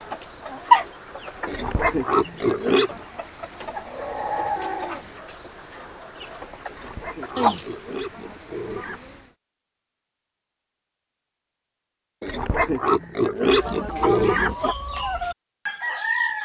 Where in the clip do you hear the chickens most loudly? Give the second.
1 s.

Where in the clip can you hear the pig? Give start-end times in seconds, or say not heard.
1.4-3.0, 6.7-9.0, 12.2-14.8.